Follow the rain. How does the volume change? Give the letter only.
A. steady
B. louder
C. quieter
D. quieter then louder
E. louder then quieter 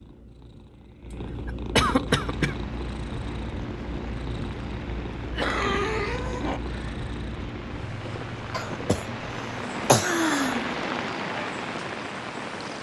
B.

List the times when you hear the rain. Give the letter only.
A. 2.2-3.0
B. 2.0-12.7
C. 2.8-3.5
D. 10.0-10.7
B.